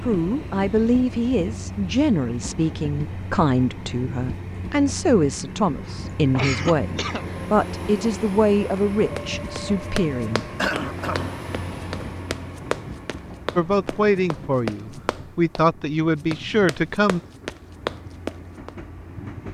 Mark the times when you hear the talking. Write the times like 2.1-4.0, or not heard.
0.0-10.4, 13.6-17.2.